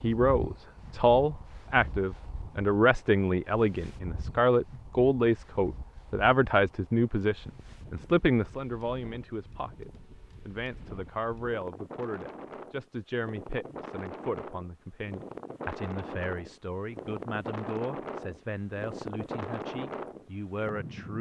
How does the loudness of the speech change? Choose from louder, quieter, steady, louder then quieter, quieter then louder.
quieter.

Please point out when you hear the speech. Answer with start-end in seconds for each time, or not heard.
0.0-21.1.